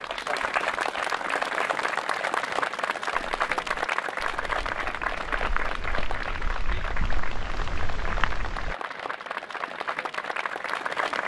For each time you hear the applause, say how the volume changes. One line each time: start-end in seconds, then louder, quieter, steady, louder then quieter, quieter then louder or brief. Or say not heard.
0.0-11.2 quieter.